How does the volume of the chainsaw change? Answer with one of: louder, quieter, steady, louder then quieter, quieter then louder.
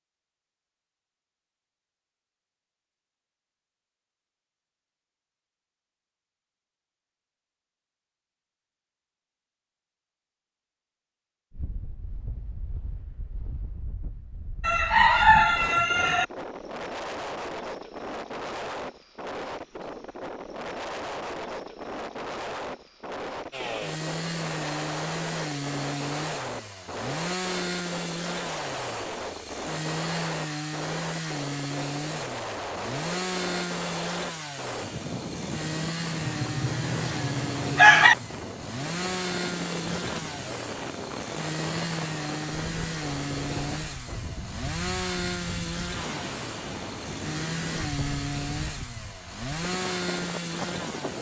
steady.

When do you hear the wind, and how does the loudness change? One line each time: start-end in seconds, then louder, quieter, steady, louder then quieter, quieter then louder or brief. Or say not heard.
11.5-51.1 steady.